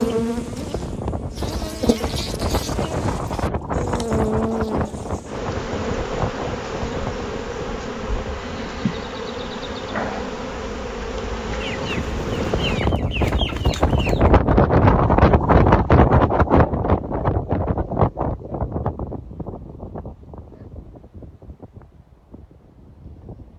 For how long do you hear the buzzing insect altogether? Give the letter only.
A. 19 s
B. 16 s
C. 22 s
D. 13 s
D.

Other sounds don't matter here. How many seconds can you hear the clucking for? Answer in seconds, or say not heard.
3 s.